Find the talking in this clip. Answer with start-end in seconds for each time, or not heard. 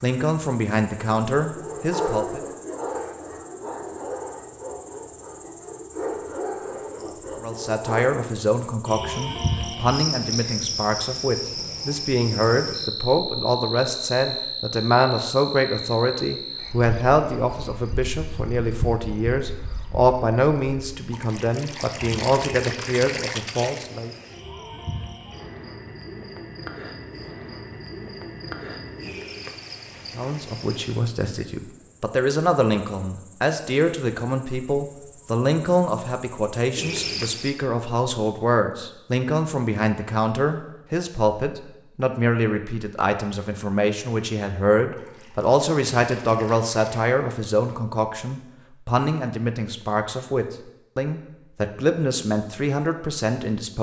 0.0-2.4, 7.4-24.1, 30.1-53.7.